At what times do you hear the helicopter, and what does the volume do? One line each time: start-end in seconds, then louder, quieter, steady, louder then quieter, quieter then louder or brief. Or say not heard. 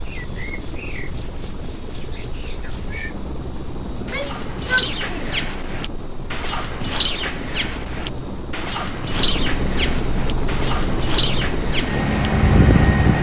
0.0-13.1 louder.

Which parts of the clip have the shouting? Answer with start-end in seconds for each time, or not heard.
4.0-5.4.